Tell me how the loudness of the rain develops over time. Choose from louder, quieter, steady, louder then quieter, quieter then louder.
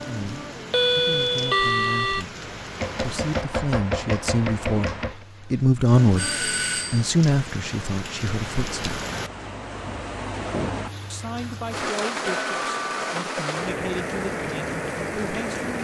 louder.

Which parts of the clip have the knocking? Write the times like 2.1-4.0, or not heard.
2.8-5.2.